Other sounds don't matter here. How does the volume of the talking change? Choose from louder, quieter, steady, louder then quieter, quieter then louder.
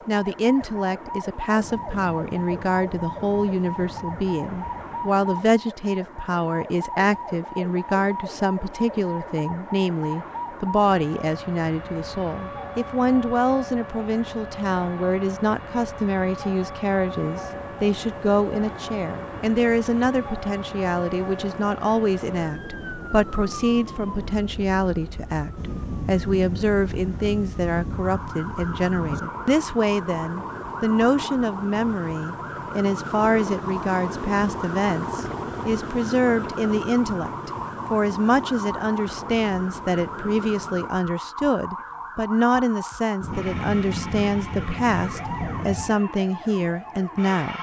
steady.